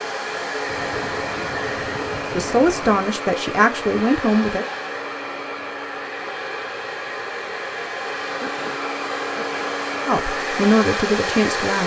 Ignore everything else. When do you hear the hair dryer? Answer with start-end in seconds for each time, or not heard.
0.0-11.8.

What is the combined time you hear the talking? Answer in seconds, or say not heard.
4 s.